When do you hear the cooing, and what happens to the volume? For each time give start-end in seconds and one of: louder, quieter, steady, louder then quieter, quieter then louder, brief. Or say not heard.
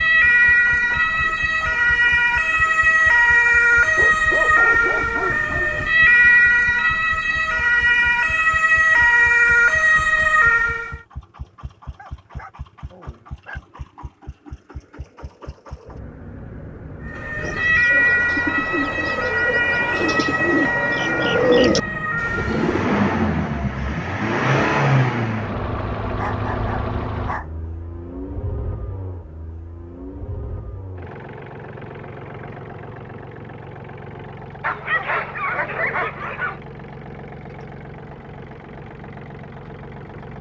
17.4-22.9 louder.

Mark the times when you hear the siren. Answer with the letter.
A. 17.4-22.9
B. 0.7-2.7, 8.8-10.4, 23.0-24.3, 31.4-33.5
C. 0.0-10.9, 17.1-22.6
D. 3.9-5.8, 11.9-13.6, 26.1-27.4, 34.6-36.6
C.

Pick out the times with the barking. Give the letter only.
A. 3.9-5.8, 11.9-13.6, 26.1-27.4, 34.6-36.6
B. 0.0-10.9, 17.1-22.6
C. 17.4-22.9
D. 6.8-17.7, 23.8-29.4
A.